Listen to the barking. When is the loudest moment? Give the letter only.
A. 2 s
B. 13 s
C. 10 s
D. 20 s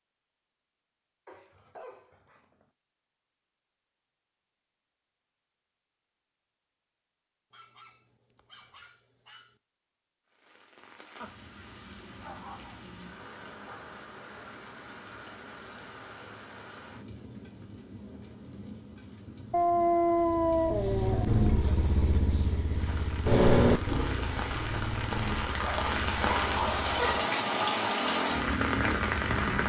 D.